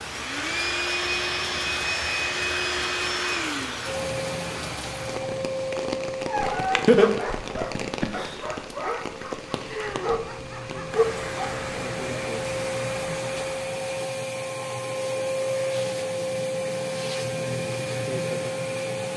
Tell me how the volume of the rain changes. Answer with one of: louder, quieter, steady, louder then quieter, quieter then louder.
steady.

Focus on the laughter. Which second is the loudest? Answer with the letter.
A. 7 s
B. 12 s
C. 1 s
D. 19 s
A.